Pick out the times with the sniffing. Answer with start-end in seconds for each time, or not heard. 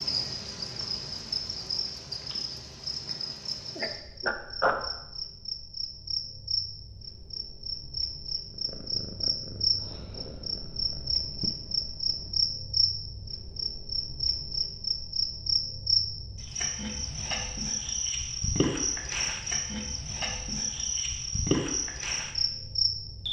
3.8-4.8.